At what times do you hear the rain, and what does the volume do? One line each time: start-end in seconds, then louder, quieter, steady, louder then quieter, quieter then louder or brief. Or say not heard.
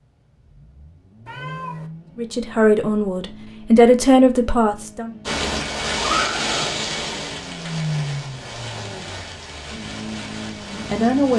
5.2-11.3 quieter.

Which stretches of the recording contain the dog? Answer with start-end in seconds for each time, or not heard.
not heard.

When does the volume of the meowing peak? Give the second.
6 s.